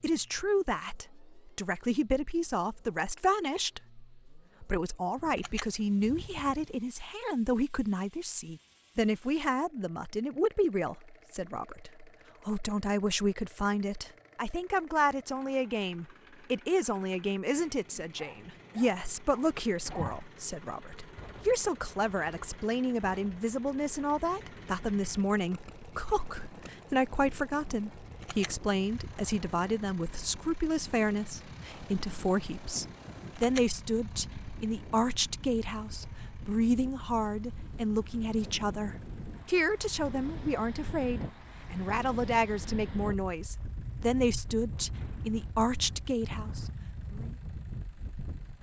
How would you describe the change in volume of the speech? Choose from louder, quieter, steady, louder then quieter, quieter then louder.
steady.